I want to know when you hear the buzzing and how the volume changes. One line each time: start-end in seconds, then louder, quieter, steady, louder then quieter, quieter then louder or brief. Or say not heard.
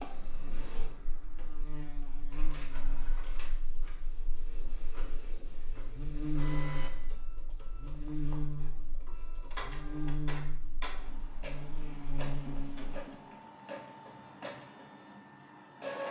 0.2-13.1 quieter then louder.